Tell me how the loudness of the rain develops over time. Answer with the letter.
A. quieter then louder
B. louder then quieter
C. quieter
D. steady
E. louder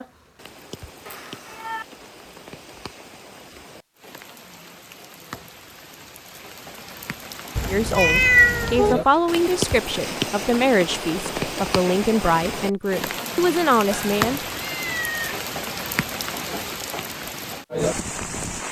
E.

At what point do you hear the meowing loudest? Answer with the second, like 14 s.
8 s.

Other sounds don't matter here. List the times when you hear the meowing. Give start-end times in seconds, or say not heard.
1.1-1.9, 7.5-8.9, 13.9-15.4.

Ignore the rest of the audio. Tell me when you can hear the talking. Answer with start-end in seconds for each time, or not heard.
7.7-14.4.